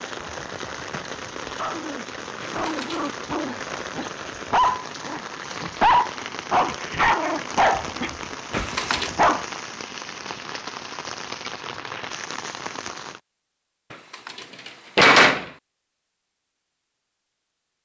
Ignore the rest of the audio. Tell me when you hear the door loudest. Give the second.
15 s.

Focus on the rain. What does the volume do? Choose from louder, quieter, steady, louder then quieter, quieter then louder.
steady.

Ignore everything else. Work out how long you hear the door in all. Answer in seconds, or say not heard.
3 s.